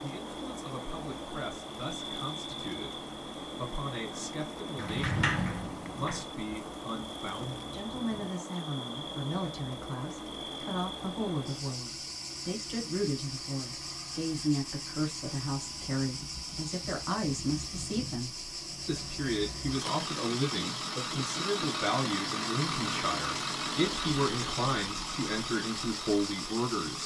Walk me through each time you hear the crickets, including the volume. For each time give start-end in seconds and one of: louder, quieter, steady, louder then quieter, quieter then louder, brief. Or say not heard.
0.0-27.0 steady.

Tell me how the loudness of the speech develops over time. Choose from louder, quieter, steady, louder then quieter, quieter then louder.
louder.